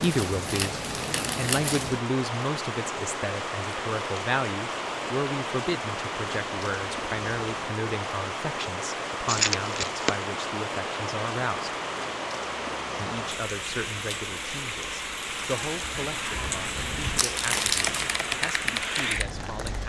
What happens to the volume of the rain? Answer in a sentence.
The loudness of the rain stays about the same.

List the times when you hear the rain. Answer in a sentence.
You can hear the rain from 0.0 to 19.8 s.